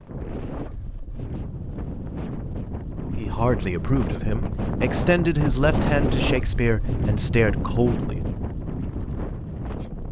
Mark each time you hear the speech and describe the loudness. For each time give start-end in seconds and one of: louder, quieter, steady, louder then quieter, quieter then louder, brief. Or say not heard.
3.0-8.2 steady.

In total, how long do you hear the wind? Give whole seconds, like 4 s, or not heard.
10 s.